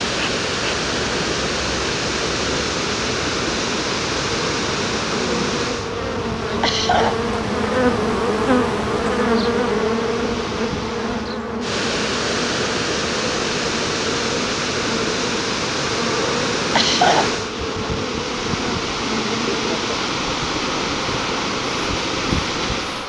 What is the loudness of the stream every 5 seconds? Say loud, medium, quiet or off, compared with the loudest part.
loud, medium, loud, loud, loud.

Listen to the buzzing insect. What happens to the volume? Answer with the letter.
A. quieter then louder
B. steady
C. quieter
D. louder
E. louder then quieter
E.